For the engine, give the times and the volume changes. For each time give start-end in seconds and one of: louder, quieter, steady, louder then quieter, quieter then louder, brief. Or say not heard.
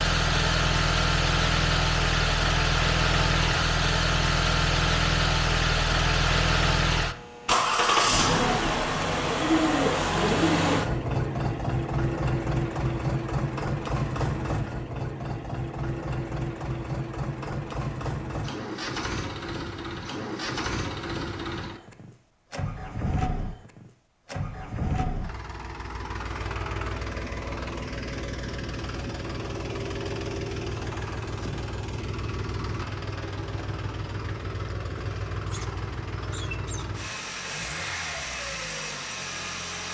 0.0-39.8 quieter.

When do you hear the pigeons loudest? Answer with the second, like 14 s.
10 s.